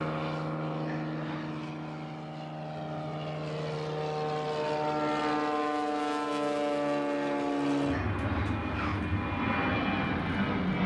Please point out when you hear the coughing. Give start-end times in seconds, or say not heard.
0.8-1.6, 7.9-9.2.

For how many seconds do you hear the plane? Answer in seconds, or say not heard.
11 s.